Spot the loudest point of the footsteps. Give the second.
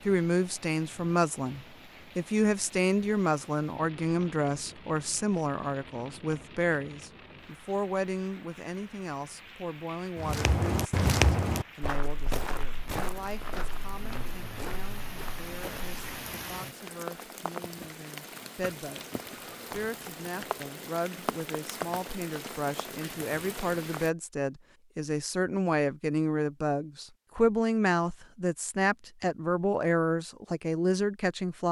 11 s.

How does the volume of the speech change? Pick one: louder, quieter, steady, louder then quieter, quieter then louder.
quieter then louder.